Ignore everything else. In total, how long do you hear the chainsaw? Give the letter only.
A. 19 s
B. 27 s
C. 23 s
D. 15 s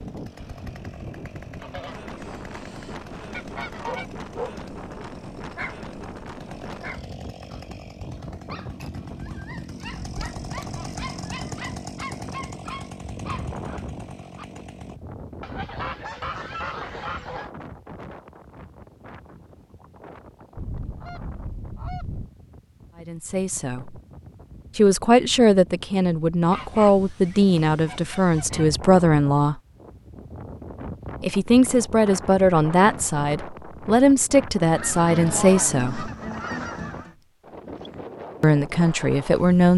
D.